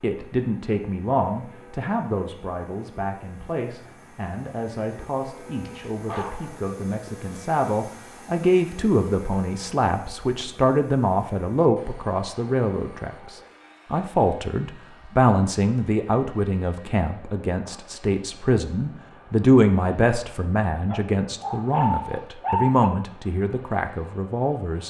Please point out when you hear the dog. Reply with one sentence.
You can hear the dog from 5.6 to 6.6 s and from 20.9 to 22.9 s.